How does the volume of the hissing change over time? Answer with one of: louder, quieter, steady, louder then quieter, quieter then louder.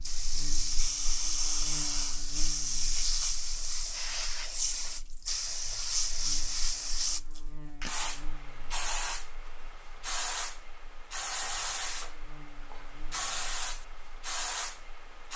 quieter.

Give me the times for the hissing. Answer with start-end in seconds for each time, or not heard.
0.0-15.3.